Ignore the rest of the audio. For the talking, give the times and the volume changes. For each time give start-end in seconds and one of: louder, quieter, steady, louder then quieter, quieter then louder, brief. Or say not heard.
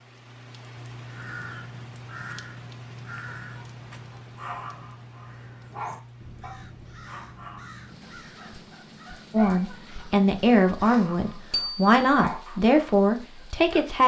9.3-14.0 steady.